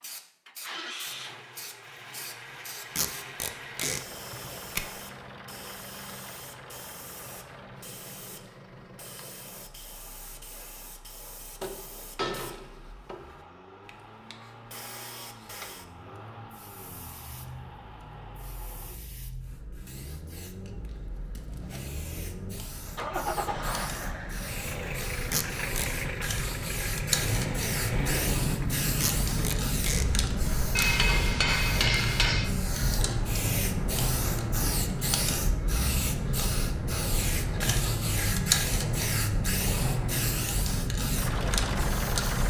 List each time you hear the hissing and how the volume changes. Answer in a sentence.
You can hear the hissing from 0.0 to 42.4 s, getting louder.